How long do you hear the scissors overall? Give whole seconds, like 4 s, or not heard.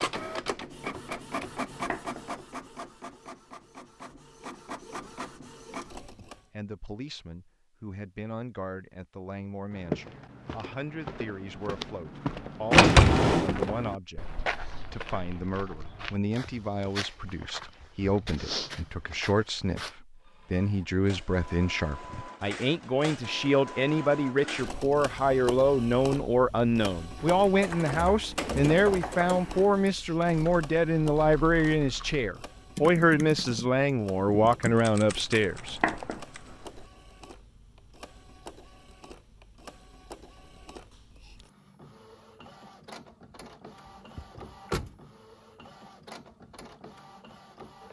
2 s.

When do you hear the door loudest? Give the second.
13 s.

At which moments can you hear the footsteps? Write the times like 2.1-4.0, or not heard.
9.7-19.9.